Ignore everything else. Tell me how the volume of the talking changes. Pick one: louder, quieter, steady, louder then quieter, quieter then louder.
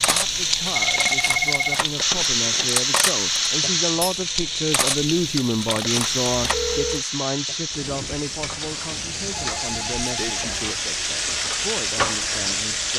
louder then quieter.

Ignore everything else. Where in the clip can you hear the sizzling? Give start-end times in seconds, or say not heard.
0.0-12.9.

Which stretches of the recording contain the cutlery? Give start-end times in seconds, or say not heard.
0.0-7.0.